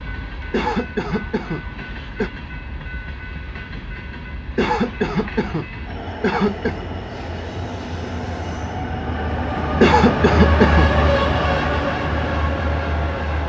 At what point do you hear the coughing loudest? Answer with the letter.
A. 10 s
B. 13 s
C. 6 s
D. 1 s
A.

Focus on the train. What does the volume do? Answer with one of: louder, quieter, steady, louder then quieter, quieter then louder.
louder.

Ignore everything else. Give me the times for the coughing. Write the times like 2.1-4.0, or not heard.
0.5-2.3, 4.5-6.8, 9.8-10.9.